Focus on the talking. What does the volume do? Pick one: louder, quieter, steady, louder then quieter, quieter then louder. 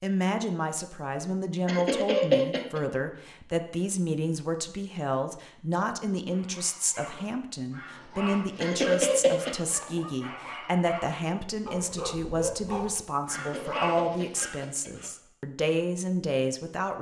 steady.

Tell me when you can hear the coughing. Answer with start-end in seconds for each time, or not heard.
1.6-2.8, 8.6-9.6, 13.3-15.1.